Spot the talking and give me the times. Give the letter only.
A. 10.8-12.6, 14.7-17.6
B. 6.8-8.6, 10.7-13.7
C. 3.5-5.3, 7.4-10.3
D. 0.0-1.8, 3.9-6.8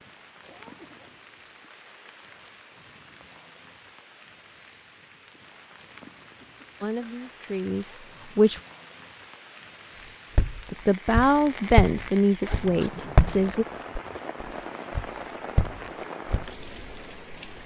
B.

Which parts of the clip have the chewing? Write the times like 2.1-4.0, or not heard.
not heard.